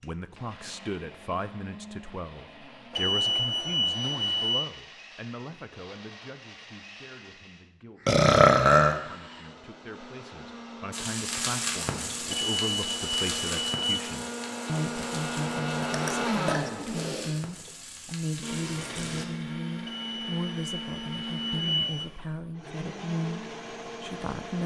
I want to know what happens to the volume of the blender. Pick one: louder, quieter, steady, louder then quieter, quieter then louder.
louder then quieter.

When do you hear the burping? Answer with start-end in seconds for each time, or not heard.
8.1-9.0, 15.8-17.4.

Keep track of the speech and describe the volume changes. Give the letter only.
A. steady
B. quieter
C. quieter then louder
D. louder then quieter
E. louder
C.